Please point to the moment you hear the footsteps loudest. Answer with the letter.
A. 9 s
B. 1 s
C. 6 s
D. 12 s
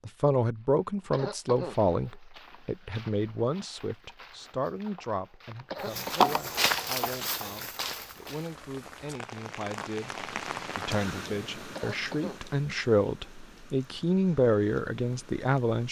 C.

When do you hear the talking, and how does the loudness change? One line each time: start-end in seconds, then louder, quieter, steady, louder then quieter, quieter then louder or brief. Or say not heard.
0.1-15.8 quieter then louder.